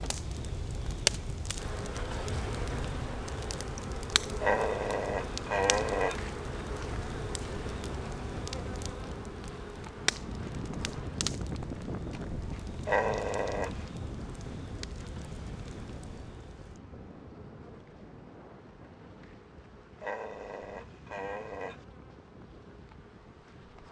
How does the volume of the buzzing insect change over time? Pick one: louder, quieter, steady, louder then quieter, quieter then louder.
quieter.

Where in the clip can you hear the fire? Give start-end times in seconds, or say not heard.
0.0-16.8.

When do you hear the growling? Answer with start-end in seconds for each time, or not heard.
4.4-6.2, 12.8-13.8, 20.0-21.9.